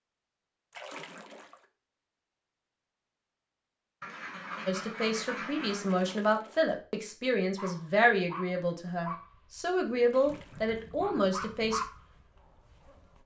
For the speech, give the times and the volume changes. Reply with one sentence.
The speech can be heard from 4.7 to 11.8 s, at a steady volume.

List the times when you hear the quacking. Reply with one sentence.
You can hear the quacking from 4.0 to 6.0 s.